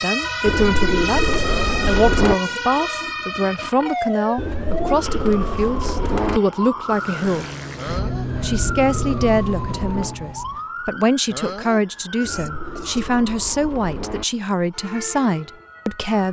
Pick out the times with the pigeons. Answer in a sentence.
The pigeons can be heard from 0.5 to 2.4 s, from 4.3 to 6.4 s, from 8.2 to 10.2 s and from 12.2 to 14.2 s.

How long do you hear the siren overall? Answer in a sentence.
You can hear the siren for 16 seconds altogether.